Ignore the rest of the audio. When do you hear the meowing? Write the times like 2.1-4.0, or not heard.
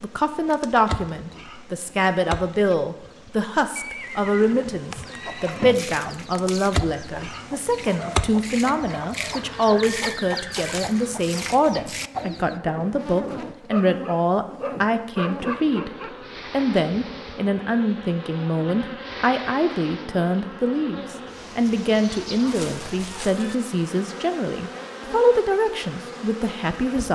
not heard.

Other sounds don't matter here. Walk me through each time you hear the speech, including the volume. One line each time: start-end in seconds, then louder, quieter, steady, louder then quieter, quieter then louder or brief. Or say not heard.
0.0-27.1 steady.